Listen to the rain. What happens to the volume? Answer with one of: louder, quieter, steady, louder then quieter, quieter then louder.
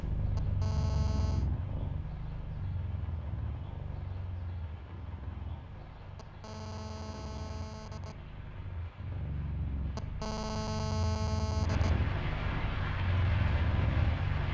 louder.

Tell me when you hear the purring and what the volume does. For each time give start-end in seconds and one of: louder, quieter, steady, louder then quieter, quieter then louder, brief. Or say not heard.
0.0-14.4 quieter then louder.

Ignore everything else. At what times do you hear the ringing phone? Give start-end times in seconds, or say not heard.
0.3-1.5, 6.2-8.2, 9.9-11.9.